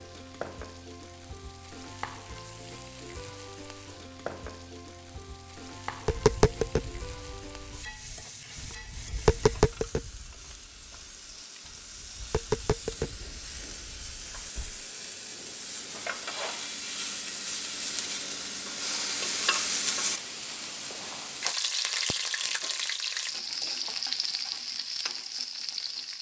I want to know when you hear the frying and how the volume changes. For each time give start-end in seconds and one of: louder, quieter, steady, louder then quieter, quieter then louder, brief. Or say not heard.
0.0-26.1 louder.